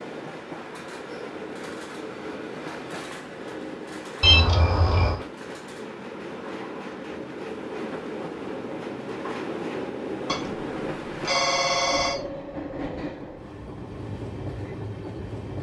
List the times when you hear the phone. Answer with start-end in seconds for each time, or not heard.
4.2-5.2, 10.2-12.2.